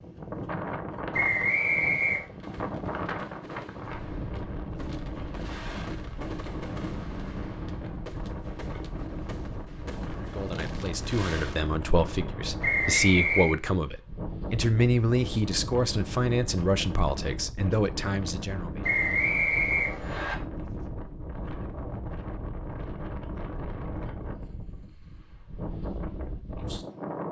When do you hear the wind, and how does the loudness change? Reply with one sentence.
You can hear the wind from 0.0 to 27.2 s, at a steady volume.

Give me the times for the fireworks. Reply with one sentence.
You can hear the fireworks from 2.1 to 11.8 s.